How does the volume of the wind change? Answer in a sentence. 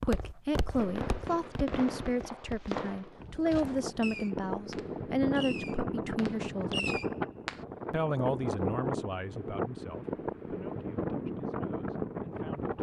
The loudness of the wind stays about the same.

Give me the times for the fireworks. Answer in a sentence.
The fireworks can be heard from 0.8 to 7.6 s.